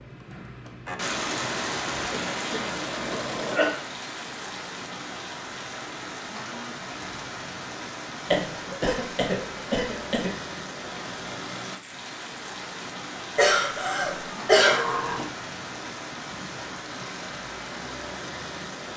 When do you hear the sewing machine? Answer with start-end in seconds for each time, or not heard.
0.0-3.6.